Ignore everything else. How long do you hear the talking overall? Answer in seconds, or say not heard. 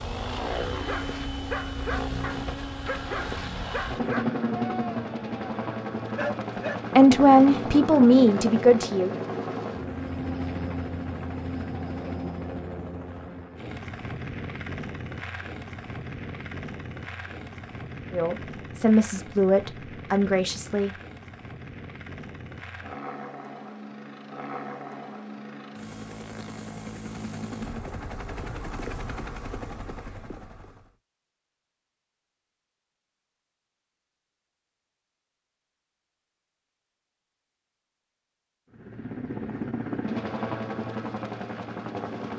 5 s.